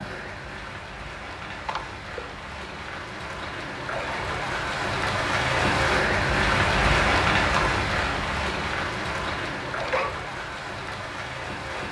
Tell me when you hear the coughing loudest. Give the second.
10 s.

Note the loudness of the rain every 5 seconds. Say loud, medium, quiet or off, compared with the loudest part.
medium, loud, medium.